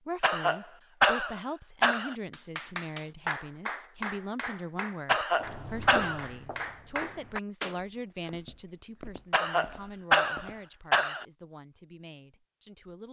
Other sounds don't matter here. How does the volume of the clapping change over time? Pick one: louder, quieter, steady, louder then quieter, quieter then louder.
quieter then louder.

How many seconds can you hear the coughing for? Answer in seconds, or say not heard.
5 s.